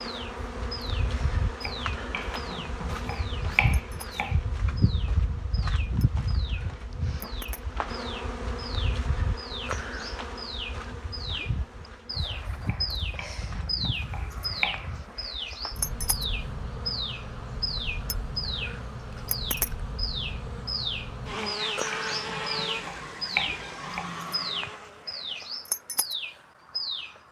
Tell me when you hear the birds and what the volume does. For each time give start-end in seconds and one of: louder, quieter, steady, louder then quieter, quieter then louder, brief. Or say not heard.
0.0-27.2 louder.